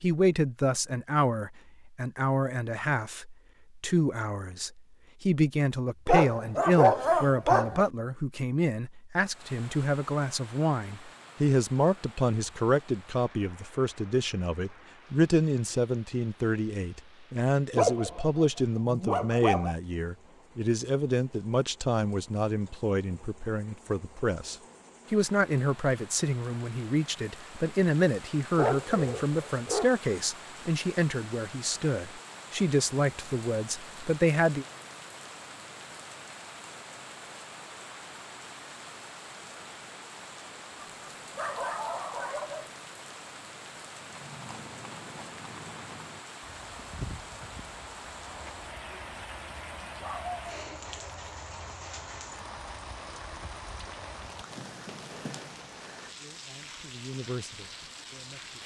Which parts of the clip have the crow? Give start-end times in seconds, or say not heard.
not heard.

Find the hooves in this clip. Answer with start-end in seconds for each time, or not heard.
44.0-55.6.